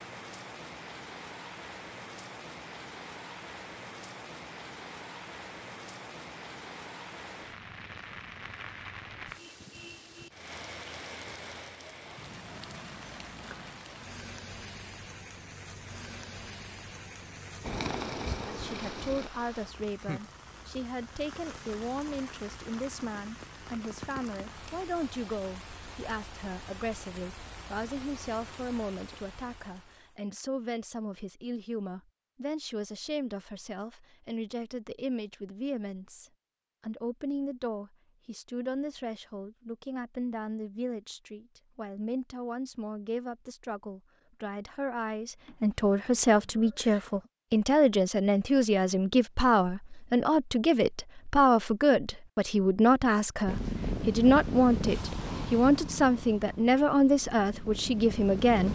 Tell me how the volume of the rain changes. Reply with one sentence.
The loudness of the rain stays about the same.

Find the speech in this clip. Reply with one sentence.
You can hear the speech from 18.4 to 58.7 s.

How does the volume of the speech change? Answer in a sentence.
The loudness of the speech goes up.